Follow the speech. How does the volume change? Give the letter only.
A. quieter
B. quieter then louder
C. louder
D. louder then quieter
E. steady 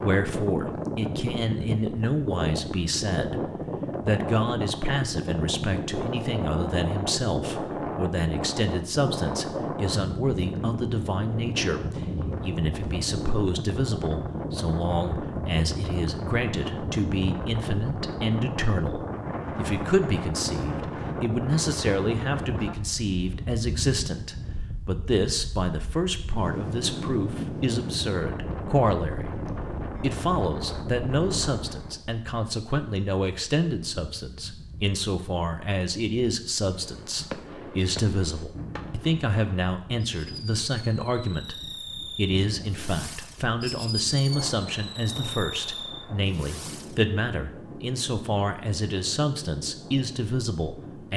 E.